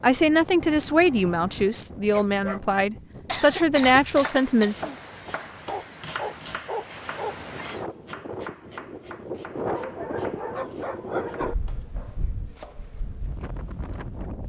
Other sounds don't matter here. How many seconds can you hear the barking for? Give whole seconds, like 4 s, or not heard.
6 s.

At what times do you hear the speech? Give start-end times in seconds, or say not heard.
0.0-4.9.